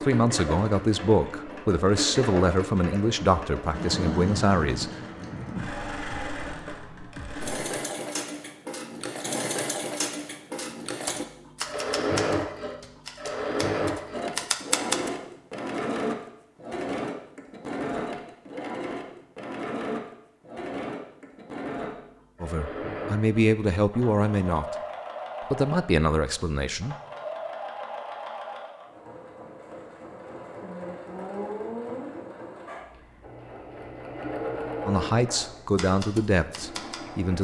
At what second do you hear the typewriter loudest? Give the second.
15 s.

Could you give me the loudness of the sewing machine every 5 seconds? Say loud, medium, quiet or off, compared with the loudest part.
loud, loud, loud, loud, medium, medium, medium, medium.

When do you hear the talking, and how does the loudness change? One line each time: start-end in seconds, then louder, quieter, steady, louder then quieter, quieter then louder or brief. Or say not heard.
0.0-4.9 steady
22.4-24.8 brief
25.5-26.9 brief
34.9-37.3 brief.